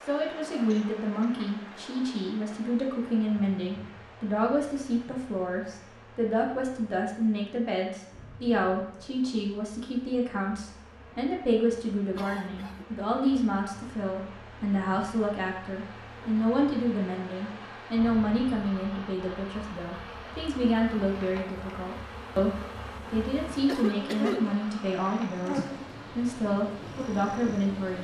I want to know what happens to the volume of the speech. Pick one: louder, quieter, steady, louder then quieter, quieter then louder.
steady.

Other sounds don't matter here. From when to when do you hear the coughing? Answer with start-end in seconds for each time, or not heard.
0.7-1.9, 12.2-13.0, 23.6-24.4.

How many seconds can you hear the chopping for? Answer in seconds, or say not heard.
not heard.